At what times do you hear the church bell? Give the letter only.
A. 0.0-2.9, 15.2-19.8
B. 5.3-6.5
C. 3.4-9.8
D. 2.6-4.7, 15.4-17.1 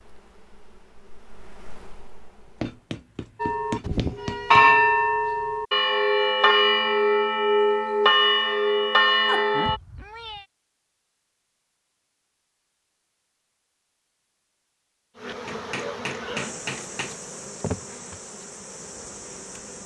C.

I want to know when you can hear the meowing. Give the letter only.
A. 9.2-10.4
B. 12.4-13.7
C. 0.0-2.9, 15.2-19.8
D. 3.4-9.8
A.